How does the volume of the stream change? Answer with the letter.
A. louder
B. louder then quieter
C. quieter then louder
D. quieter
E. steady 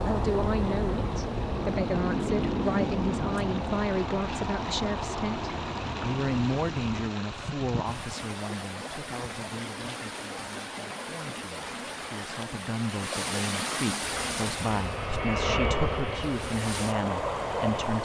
A.